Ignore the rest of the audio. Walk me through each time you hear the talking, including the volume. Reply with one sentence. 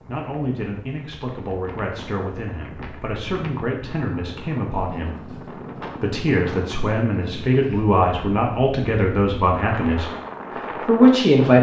You can hear the talking from 0.1 to 10.1 s, getting louder; and briefly from 10.8 to 11.5 s.